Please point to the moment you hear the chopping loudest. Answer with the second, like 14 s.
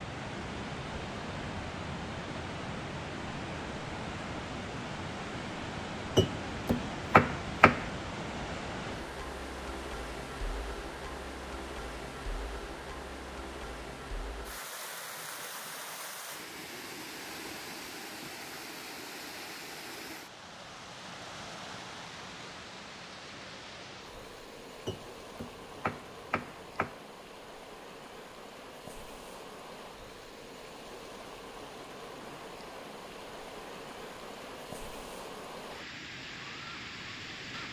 7 s.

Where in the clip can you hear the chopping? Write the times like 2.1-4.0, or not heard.
6.2-7.9, 24.9-26.9.